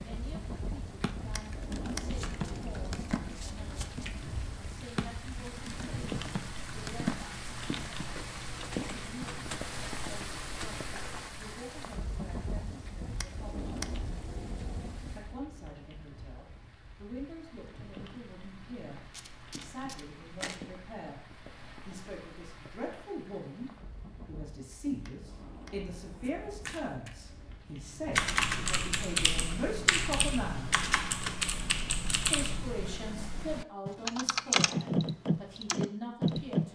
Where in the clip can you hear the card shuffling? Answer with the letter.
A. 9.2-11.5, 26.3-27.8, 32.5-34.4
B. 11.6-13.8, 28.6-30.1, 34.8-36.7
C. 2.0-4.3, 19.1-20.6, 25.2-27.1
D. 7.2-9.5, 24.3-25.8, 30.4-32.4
C.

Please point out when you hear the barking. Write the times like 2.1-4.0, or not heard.
not heard.